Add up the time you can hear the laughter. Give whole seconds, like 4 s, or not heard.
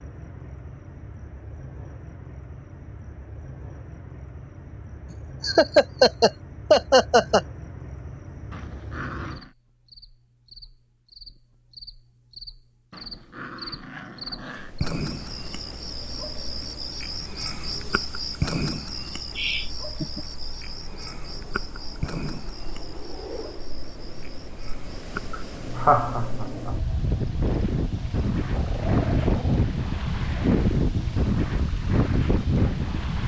4 s.